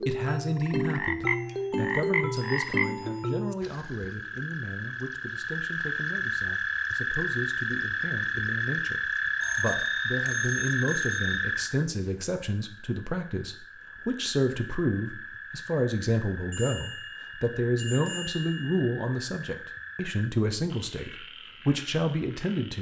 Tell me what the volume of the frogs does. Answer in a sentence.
The volume of the frogs goes down.